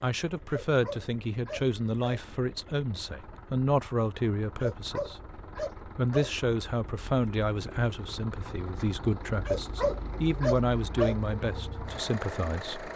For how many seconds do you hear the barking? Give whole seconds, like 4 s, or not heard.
5 s.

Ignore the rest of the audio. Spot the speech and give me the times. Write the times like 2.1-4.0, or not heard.
0.0-12.9.